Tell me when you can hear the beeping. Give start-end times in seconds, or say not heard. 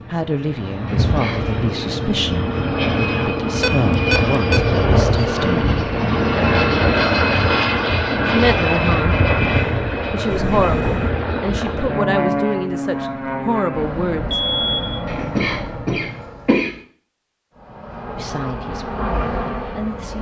3.6-4.6, 10.3-11.1, 14.3-15.0.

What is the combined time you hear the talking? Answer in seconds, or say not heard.
14 s.